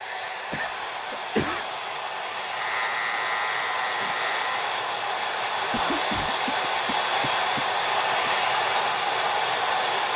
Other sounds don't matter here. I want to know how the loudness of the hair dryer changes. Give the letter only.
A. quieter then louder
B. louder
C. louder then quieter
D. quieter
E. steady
B.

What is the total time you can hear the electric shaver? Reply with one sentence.
The electric shaver can be heard for 2 seconds in total.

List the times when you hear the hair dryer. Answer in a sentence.
The hair dryer can be heard from 0.0 to 10.1 s.